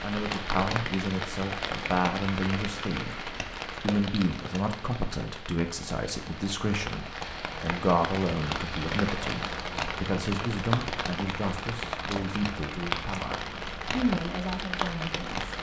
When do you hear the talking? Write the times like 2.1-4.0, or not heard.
0.0-15.5.